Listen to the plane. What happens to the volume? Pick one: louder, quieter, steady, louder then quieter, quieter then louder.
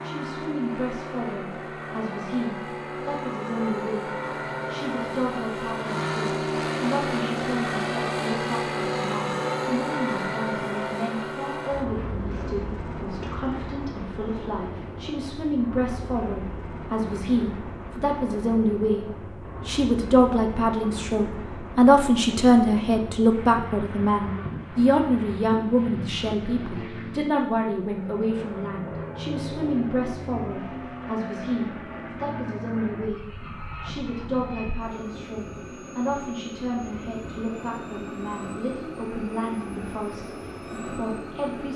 quieter.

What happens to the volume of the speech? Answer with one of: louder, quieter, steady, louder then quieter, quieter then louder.
louder then quieter.